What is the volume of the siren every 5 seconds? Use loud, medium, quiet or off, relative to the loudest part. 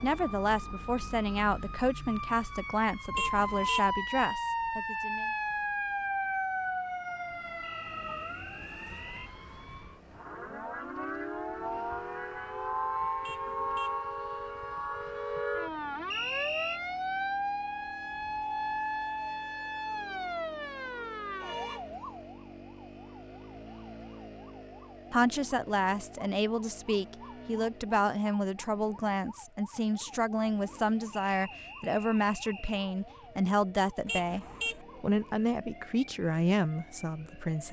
loud, loud, loud, loud, medium, quiet, quiet, quiet.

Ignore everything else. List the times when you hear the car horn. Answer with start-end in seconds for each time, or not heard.
3.1-3.9, 13.2-14.0, 34.0-34.8.